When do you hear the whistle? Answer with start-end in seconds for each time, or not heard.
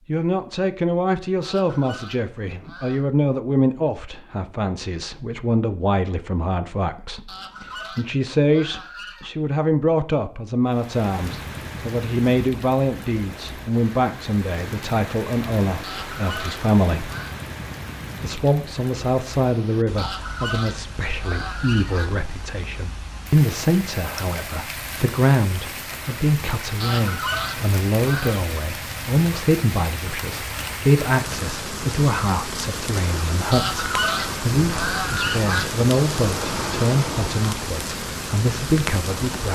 not heard.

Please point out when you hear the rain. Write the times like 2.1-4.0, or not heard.
10.7-39.5.